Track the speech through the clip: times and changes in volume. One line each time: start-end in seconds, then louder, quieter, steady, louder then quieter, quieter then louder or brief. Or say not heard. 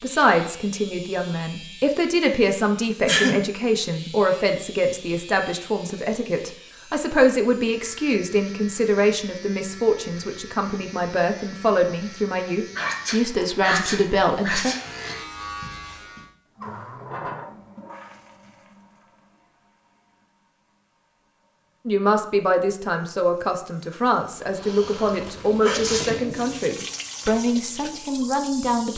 0.0-14.8 steady
21.9-28.9 steady.